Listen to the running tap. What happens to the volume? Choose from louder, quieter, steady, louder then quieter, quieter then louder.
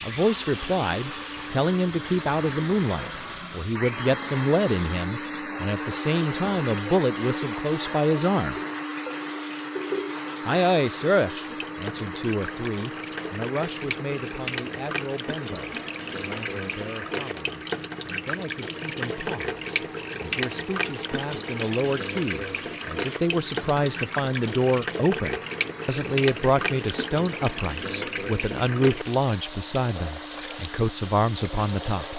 louder.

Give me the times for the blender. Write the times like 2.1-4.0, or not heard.
0.0-32.1.